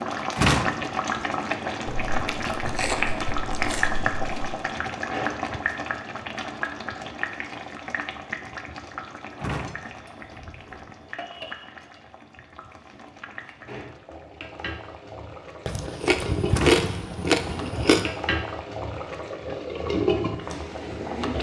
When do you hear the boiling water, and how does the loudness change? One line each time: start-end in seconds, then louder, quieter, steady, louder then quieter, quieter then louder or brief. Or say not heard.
0.0-21.3 quieter then louder.